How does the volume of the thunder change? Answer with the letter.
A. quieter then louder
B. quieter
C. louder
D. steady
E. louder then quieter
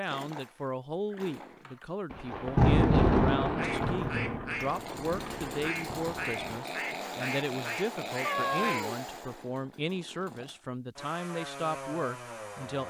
B.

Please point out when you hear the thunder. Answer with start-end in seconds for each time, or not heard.
2.1-6.5.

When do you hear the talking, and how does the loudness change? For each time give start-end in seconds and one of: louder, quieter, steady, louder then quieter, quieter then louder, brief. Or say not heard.
0.0-12.8 steady.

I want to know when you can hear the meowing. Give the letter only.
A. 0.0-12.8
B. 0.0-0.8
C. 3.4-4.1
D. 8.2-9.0
D.